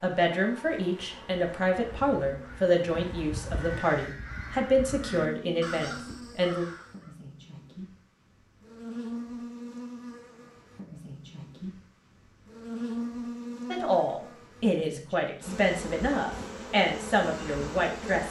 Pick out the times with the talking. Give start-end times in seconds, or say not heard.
0.0-6.7, 13.7-18.2.